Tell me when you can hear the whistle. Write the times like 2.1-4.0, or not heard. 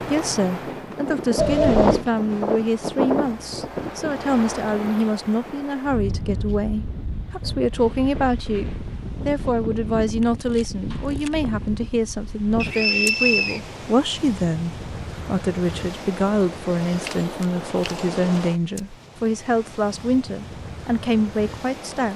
12.6-13.6.